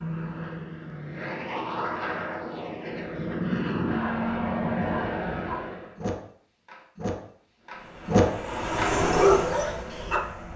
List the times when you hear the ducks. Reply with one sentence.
You can't hear the ducks here.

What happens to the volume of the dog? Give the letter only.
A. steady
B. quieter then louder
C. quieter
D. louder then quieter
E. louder
E.